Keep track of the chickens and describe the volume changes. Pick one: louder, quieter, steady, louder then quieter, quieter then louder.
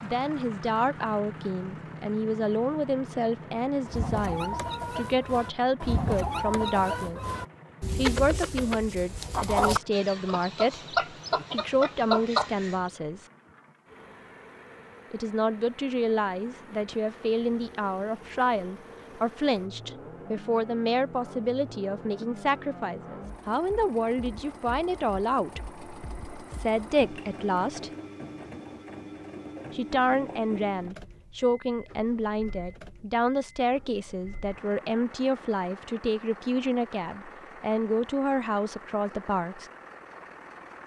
louder.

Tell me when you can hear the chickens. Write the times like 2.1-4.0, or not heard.
3.9-12.9.